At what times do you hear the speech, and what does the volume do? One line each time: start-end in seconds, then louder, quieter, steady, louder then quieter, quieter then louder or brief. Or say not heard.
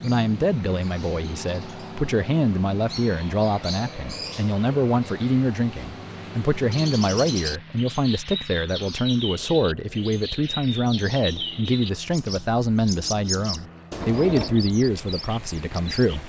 0.0-16.2 steady.